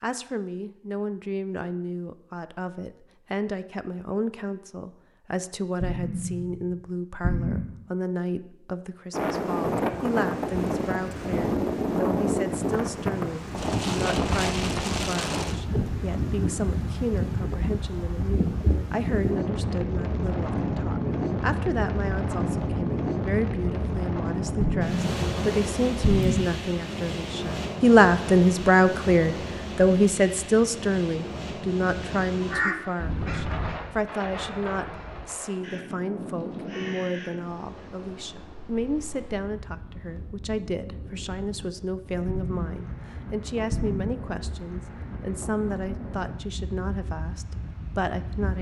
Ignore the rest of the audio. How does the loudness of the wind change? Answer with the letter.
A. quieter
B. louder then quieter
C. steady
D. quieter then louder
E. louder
A.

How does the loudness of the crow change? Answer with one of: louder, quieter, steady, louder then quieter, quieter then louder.
quieter then louder.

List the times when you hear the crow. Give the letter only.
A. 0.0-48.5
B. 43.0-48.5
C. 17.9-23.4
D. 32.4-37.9
D.